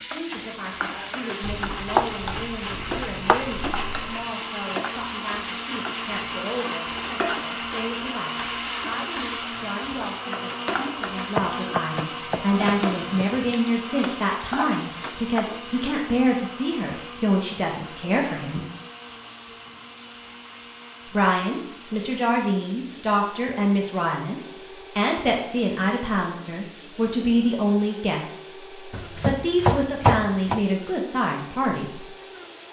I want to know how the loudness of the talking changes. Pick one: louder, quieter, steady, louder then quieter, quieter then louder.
louder.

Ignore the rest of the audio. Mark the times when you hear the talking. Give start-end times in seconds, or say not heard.
0.0-18.6, 21.1-32.0.